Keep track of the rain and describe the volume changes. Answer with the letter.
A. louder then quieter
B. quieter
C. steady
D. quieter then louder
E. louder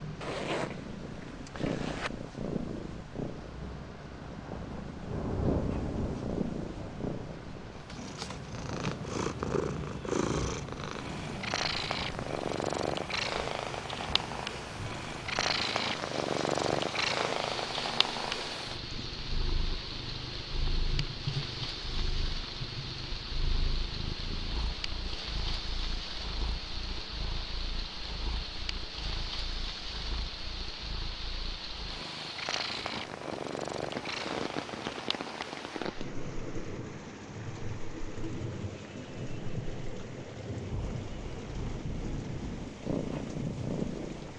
C.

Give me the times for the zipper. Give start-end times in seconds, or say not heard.
0.2-2.1.